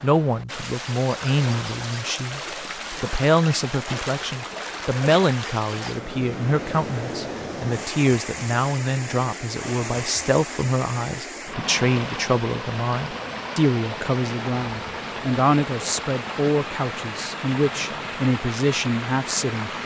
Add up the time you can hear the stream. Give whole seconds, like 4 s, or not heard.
20 s.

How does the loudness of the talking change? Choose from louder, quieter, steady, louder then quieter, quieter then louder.
steady.